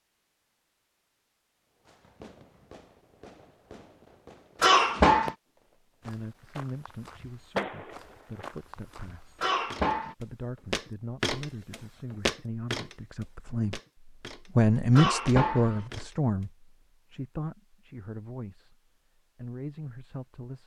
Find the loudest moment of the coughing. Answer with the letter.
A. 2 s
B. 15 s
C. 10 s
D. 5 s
D.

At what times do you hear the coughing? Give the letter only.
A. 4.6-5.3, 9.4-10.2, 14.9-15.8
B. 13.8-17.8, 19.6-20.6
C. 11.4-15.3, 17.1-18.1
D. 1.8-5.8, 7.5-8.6
A.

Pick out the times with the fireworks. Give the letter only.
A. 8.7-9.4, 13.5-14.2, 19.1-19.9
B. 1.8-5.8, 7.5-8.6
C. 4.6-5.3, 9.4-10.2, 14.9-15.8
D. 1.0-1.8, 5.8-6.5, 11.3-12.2
B.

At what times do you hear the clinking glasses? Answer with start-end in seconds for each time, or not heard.
not heard.